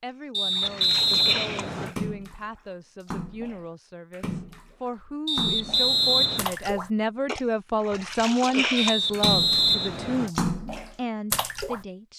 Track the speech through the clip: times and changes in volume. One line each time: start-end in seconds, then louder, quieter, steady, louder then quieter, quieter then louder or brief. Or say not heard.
0.0-12.1 louder then quieter.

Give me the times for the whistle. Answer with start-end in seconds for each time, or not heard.
0.3-1.9, 5.2-6.5, 8.8-10.3.